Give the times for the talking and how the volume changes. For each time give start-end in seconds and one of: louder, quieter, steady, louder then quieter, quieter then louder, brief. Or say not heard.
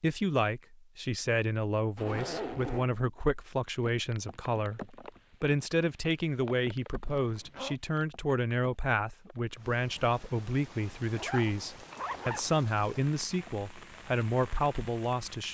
0.0-15.4 steady.